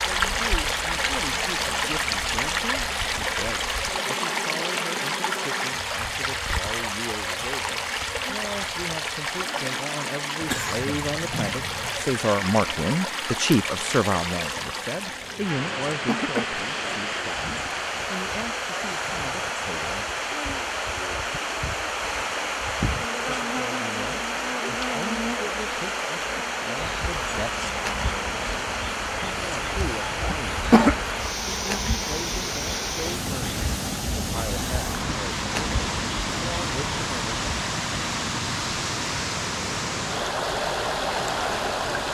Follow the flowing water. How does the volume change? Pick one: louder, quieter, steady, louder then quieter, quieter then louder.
steady.